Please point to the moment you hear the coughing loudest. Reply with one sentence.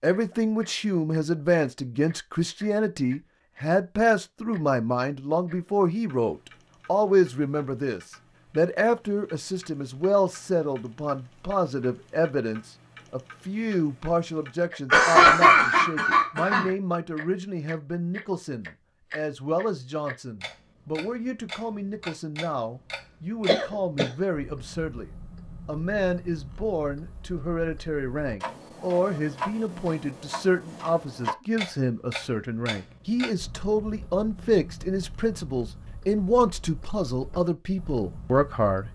The loudest moment of the coughing is at 15 seconds.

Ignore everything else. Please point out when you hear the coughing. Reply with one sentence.
The coughing can be heard from 14.9 to 16.7 s and from 23.4 to 24.1 s.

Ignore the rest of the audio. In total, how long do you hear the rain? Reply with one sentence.
You can't hear the rain here.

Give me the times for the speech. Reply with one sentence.
The speech can be heard from 0.0 to 38.9 s.